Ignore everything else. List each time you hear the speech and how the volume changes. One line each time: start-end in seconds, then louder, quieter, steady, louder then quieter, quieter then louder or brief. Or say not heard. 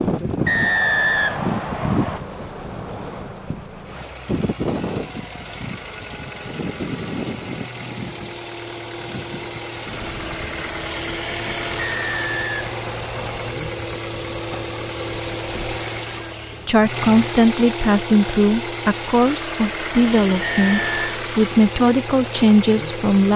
16.6-23.3 steady.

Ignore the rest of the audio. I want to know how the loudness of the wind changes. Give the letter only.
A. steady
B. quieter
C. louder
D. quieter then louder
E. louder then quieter
B.